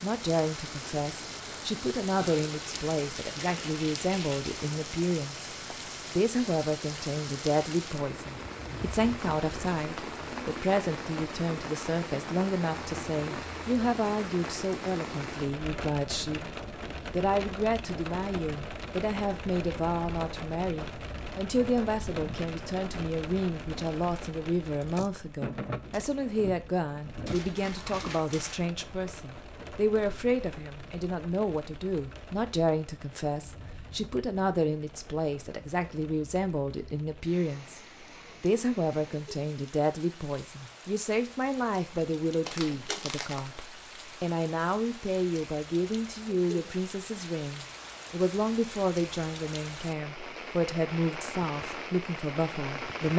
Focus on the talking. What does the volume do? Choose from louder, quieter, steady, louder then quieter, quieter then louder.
steady.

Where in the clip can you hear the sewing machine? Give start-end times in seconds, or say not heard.
not heard.